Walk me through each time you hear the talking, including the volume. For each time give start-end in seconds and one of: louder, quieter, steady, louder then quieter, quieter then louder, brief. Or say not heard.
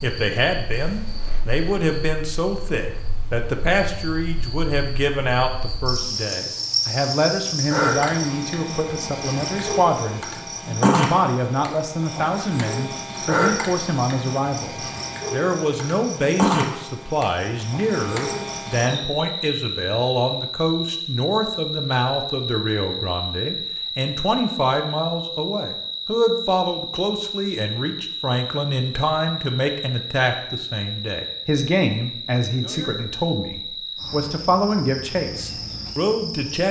0.0-36.6 steady.